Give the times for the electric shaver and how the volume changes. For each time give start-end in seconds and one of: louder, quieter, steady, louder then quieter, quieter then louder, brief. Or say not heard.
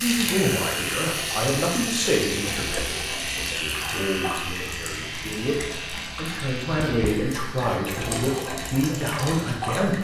0.0-9.9 quieter.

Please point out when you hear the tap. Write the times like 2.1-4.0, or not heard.
0.0-9.9.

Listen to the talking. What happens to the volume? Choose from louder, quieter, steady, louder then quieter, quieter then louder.
quieter then louder.